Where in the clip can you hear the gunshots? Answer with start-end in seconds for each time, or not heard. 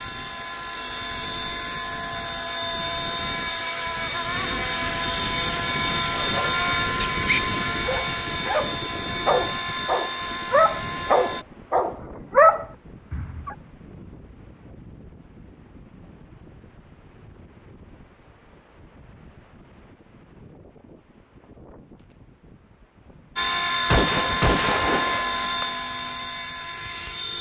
23.9-25.6.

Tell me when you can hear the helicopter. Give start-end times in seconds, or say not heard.
0.0-11.4, 23.4-27.3.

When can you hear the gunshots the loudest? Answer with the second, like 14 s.
24 s.